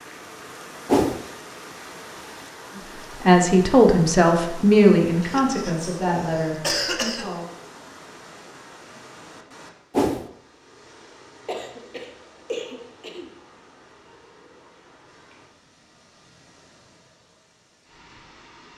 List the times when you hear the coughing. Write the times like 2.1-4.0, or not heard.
5.2-7.2, 11.4-13.3.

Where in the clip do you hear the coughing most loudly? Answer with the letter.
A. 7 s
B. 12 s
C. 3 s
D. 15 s
A.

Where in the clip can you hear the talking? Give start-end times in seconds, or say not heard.
2.8-7.5.